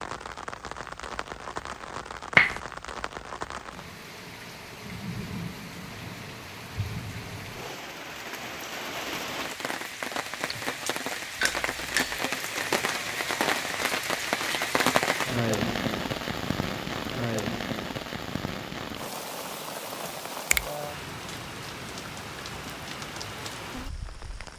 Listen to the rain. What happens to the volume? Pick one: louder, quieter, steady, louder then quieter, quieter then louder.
louder then quieter.